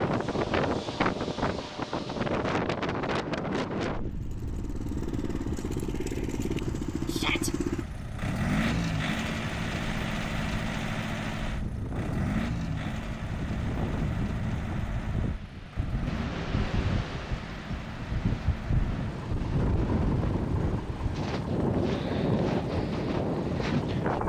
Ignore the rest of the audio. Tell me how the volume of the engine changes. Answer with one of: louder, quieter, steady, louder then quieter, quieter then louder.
quieter.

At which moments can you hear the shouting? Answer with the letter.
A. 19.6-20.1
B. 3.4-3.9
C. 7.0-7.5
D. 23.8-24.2
C.